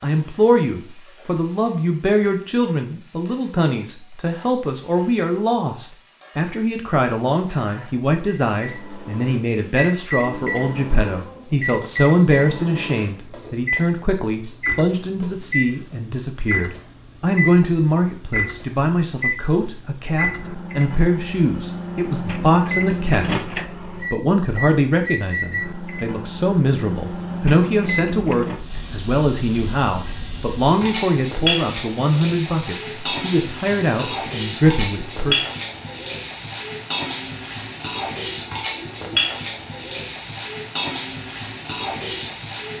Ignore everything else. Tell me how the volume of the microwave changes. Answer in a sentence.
The loudness of the microwave stays about the same.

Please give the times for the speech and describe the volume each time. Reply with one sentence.
The speech can be heard from 0.0 to 35.4 s, at a steady volume.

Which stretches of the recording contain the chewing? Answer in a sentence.
The chewing can't be heard in this clip.